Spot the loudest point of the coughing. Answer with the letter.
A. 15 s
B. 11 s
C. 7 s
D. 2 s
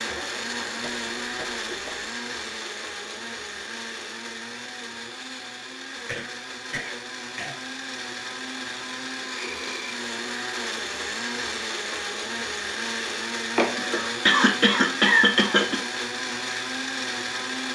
A.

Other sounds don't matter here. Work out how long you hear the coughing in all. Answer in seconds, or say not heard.
5 s.